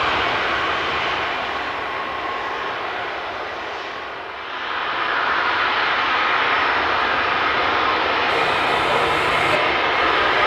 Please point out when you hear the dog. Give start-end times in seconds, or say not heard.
8.2-10.4.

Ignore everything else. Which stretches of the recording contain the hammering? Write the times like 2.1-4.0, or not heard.
not heard.